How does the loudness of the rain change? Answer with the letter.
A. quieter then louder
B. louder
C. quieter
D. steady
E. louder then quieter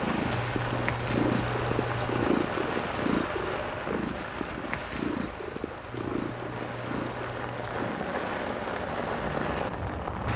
A.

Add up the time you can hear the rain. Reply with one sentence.
You can hear the rain for 10 seconds altogether.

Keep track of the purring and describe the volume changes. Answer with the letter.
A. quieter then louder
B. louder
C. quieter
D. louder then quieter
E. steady
C.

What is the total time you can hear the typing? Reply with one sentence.
The typing can be heard for 4 seconds in total.